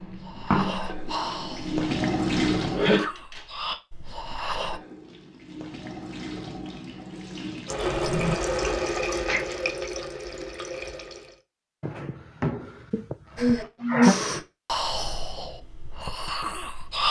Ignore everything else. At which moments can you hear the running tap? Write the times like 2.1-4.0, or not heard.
0.0-3.0, 4.5-11.4.